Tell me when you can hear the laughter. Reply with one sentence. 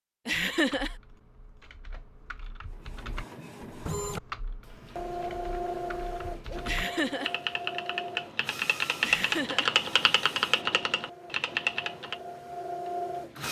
You can hear the laughter from 0.2 to 0.9 s, from 6.7 to 7.3 s and from 9.0 to 9.7 s.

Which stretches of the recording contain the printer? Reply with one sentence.
You can hear the printer from 2.8 to 13.4 s.